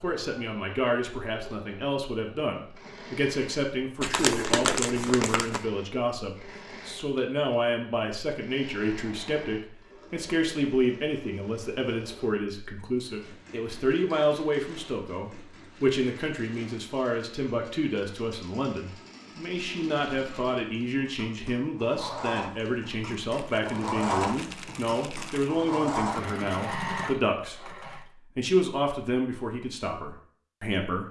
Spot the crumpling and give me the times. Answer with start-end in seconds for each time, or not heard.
4.0-5.7, 23.2-25.5.